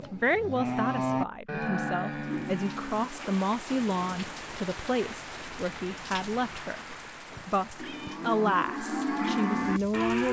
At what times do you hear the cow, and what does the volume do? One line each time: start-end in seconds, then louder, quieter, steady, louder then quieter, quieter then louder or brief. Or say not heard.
0.0-4.7 quieter
7.3-10.2 brief.